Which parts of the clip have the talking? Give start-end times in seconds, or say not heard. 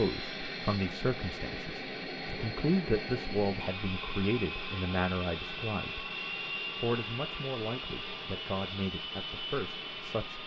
0.0-6.1, 6.8-10.4.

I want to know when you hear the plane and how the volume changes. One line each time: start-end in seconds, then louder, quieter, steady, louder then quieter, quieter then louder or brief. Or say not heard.
0.0-10.4 steady.